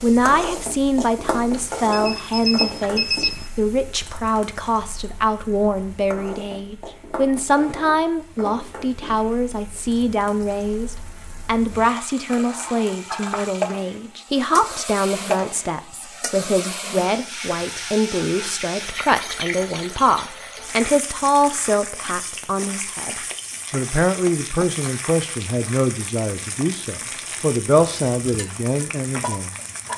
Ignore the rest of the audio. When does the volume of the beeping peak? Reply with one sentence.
The volume of the beeping peaks at 3 seconds.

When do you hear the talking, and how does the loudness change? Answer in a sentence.
The talking can be heard from 0.0 to 29.9 s, at a steady volume.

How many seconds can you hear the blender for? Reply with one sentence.
The blender can't be heard in this clip.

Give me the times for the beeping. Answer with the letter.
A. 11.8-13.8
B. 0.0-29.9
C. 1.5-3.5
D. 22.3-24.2
C.